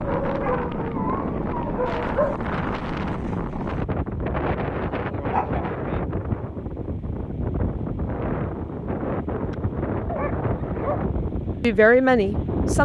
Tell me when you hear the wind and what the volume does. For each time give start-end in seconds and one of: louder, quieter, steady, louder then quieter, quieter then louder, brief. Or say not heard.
0.0-12.8 steady.